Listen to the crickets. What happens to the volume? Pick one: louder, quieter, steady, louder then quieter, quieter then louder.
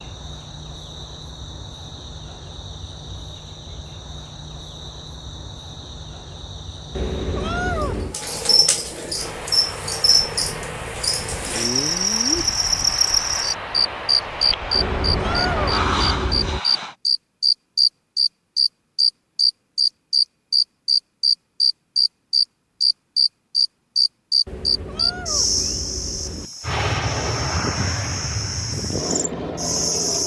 louder then quieter.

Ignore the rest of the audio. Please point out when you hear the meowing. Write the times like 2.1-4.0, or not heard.
7.0-8.2, 14.7-16.6, 24.4-26.5.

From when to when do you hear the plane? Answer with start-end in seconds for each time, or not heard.
9.2-16.9, 26.6-30.2.